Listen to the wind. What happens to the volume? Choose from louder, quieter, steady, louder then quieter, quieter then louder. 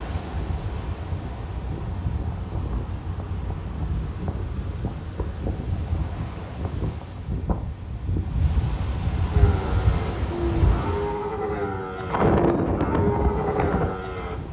louder.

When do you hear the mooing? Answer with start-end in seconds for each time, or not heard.
9.2-14.4.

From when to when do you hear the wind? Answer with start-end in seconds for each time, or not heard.
0.0-14.4.